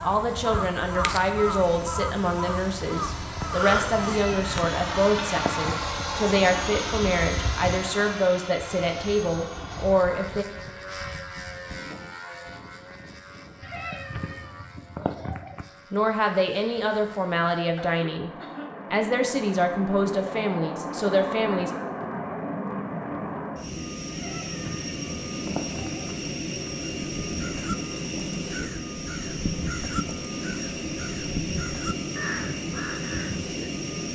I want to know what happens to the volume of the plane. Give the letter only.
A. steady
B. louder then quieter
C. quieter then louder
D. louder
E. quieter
C.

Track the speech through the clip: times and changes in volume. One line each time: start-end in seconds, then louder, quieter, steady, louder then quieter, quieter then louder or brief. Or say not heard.
0.0-10.4 steady
15.9-18.3 brief
18.9-21.7 brief.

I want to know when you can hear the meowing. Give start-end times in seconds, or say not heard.
4.0-6.0, 13.6-15.7, 24.1-26.1.